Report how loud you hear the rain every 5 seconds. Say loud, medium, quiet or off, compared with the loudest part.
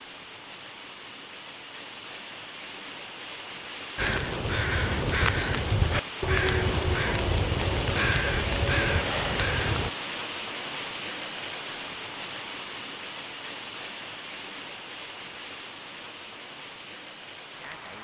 medium, loud, loud, medium.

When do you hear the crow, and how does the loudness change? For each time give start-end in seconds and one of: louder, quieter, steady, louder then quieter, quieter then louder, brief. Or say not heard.
4.0-9.9 steady.